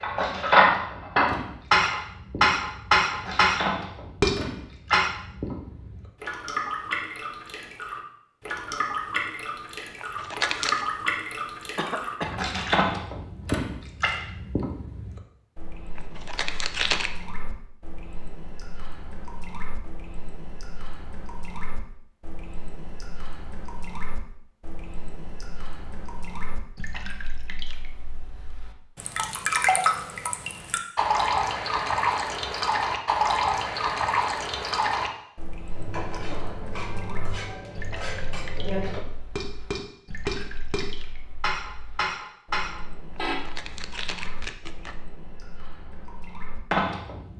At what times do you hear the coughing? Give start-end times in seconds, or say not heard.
11.8-12.4.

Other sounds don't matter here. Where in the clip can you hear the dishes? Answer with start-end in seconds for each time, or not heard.
0.0-5.1, 35.7-43.4.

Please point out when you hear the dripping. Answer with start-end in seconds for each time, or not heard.
0.0-47.3.